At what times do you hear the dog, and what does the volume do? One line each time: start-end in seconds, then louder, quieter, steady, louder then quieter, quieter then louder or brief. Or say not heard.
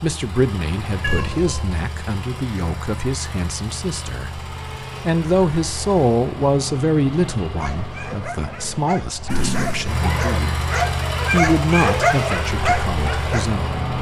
7.5-13.4 louder.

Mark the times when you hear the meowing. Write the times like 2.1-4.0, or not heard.
1.0-1.6, 9.2-10.0.